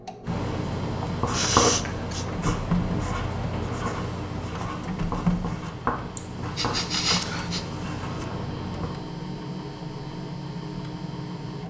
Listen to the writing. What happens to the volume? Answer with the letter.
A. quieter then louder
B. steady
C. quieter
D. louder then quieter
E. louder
C.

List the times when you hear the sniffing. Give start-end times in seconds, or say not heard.
1.3-2.2, 6.2-7.7.